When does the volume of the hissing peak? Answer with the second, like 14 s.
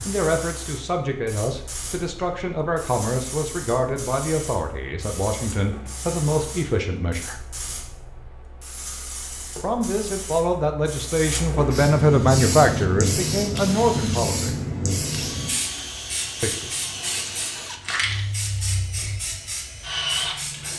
13 s.